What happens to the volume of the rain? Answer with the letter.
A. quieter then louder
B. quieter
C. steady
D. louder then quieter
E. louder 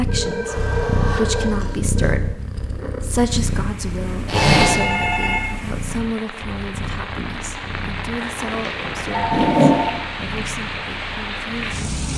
E.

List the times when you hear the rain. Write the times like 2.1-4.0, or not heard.
3.2-12.1.